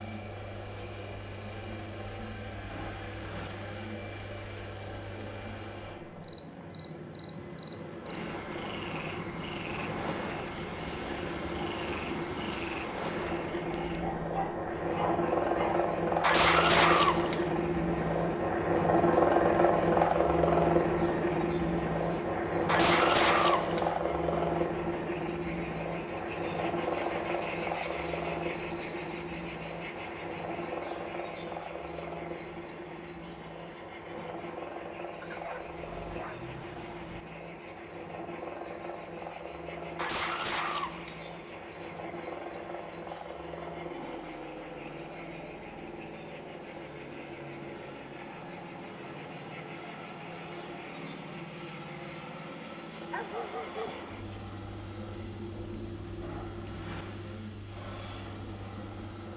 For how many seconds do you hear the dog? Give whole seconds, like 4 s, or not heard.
5 s.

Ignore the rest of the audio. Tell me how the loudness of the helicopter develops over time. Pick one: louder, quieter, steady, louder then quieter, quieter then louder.
louder then quieter.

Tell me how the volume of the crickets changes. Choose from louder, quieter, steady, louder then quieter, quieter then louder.
louder then quieter.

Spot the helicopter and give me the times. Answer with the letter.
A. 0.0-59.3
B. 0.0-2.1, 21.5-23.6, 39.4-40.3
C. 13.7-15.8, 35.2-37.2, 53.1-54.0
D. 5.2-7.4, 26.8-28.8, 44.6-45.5
A.